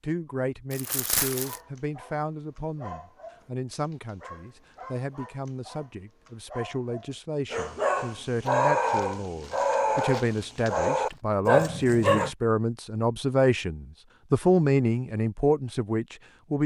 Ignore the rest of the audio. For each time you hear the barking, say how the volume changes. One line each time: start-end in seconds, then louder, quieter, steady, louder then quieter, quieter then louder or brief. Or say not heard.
1.3-12.3 louder.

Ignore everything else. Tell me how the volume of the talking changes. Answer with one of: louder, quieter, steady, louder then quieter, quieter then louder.
louder.